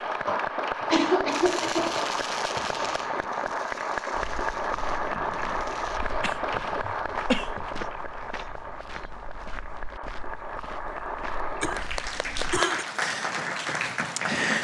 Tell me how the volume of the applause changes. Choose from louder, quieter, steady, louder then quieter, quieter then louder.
quieter then louder.